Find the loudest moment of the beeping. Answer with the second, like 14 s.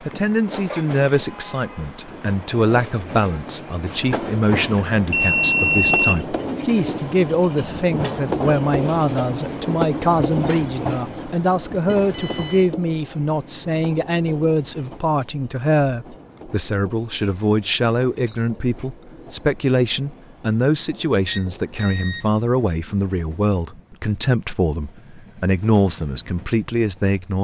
6 s.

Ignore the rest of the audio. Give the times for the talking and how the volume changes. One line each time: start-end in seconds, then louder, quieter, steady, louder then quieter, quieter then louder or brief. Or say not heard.
0.1-27.3 steady.